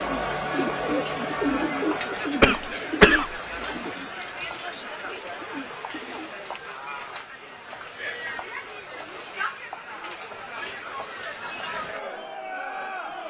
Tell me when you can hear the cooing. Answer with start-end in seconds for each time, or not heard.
0.0-6.3.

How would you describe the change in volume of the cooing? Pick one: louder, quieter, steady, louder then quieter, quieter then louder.
quieter.